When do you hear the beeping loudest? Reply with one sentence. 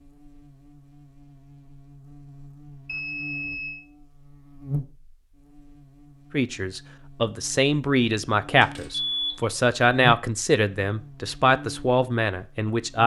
The loudest moment of the beeping is at 9 seconds.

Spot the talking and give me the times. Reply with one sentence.
You can hear the talking from 6.3 to 13.0 s.